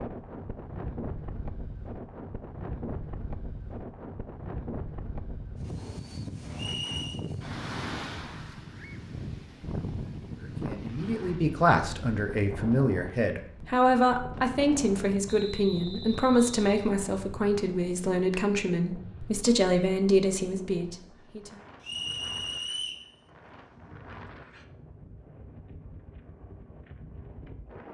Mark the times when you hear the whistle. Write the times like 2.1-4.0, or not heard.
6.5-7.2, 15.2-16.9, 21.8-23.1.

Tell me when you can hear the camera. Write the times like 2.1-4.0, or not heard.
not heard.